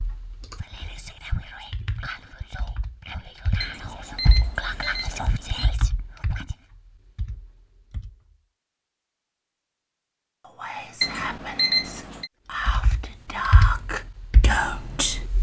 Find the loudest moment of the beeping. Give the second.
12 s.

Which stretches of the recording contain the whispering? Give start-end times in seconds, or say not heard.
0.6-6.5, 10.4-15.2.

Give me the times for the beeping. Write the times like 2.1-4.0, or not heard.
3.6-5.7, 11.0-12.3.